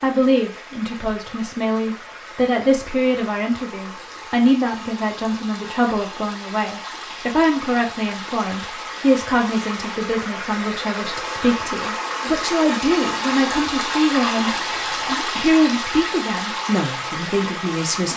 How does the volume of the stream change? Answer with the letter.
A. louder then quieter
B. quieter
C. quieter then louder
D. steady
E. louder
E.